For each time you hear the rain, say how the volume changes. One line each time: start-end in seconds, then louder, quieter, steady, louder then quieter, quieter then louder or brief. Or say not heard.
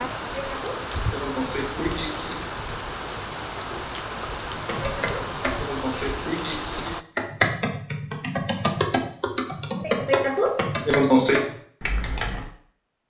0.0-7.0 steady.